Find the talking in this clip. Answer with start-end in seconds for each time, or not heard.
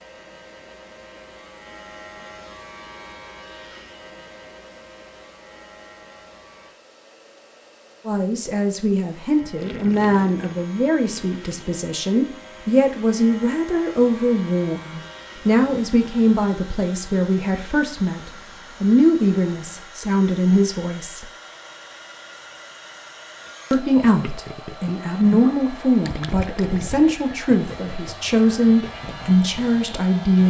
8.1-21.3, 23.7-30.4.